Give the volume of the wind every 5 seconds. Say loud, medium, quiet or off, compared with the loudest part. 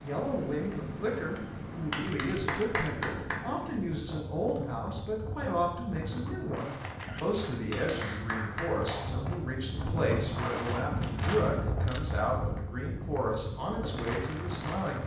medium, medium, loud.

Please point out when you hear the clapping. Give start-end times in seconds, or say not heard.
1.9-3.5, 7.7-9.1.